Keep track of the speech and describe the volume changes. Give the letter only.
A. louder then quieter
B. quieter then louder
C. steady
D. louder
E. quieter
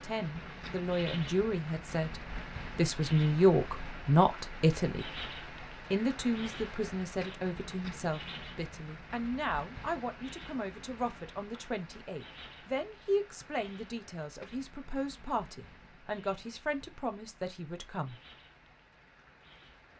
E.